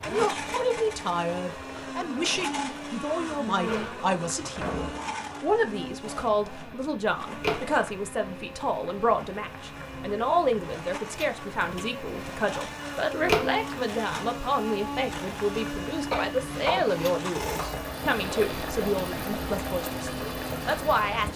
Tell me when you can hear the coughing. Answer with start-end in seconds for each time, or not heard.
16.1-16.9.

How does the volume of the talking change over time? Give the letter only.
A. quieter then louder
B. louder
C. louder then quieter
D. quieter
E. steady
E.